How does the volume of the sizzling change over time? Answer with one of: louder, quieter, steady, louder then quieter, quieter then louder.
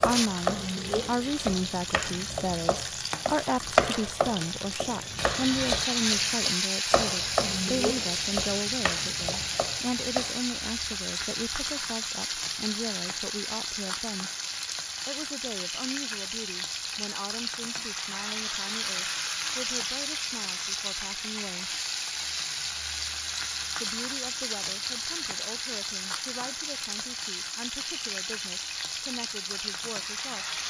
steady.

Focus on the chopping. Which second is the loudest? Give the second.
4 s.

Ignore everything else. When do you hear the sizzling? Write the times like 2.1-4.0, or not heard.
0.0-30.6.